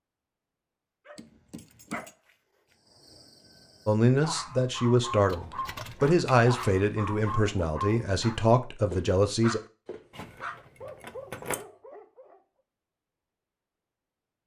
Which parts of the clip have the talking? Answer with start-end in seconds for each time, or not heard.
3.9-9.6.